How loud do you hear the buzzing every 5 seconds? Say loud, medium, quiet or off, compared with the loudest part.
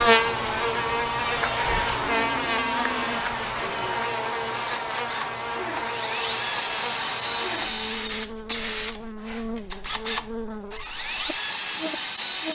loud, medium, quiet.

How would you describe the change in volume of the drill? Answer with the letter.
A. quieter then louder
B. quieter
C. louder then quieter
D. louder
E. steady
D.